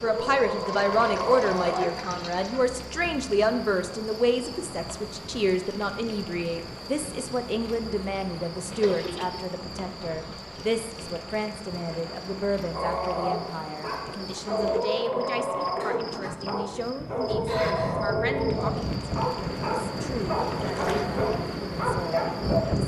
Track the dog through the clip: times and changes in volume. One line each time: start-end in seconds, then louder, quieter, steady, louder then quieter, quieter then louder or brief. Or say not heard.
0.0-1.9 brief
12.7-22.6 steady.